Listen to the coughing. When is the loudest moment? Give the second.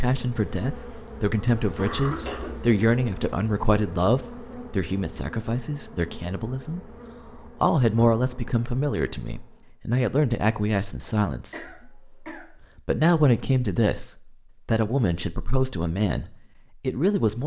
2 s.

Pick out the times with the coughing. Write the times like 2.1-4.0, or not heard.
0.1-2.5, 11.5-12.8.